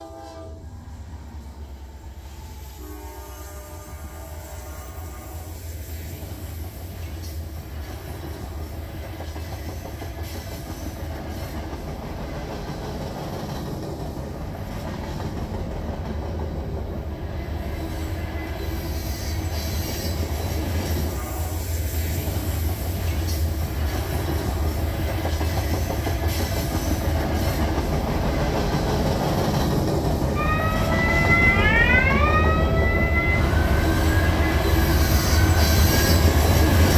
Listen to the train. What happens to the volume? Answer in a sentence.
The loudness of the train goes up.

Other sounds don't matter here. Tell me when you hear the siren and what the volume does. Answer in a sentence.
The siren can be heard from 30.4 to 36.9 s, getting quieter.